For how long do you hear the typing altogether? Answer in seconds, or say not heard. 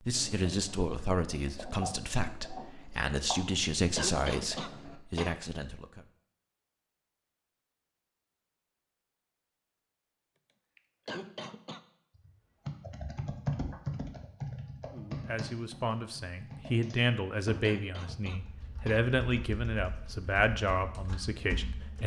10 s.